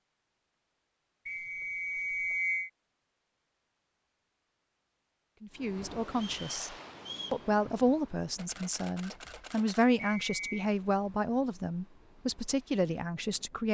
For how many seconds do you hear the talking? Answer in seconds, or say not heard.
8 s.